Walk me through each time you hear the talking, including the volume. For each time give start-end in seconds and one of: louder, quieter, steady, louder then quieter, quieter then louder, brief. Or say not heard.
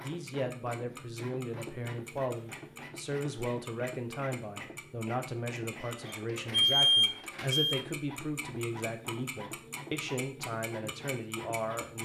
0.0-12.0 steady.